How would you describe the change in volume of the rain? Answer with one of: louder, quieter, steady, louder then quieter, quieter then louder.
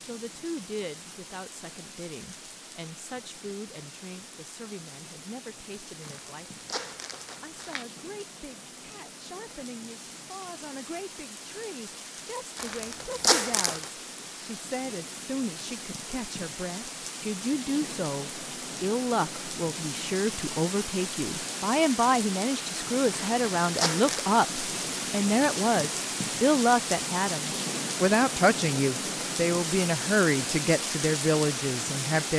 louder.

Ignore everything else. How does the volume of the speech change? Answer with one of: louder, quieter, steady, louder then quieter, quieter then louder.
louder.